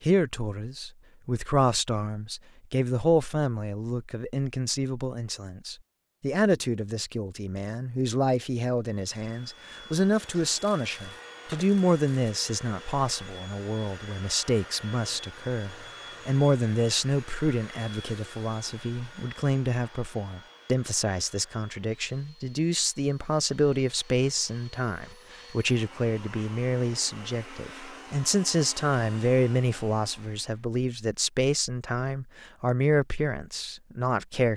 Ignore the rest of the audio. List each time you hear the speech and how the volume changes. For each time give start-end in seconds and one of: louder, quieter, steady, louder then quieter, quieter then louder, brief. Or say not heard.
0.0-34.5 steady.